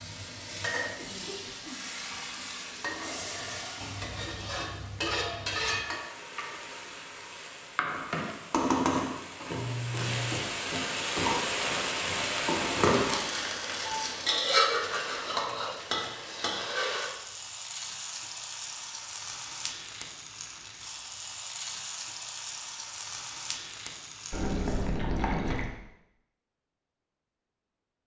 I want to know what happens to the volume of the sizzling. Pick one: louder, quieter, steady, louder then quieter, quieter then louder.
louder then quieter.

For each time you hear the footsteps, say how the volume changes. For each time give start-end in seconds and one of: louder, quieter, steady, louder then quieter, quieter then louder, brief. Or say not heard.
not heard.